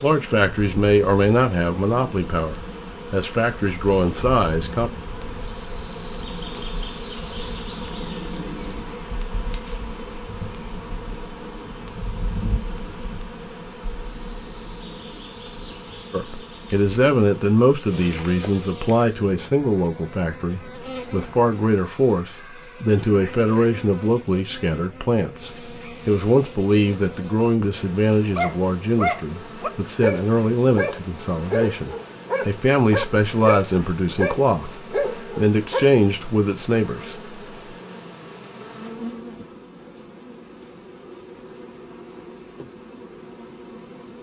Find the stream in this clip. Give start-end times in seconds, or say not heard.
not heard.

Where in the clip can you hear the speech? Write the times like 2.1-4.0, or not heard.
0.0-4.9, 16.1-37.4.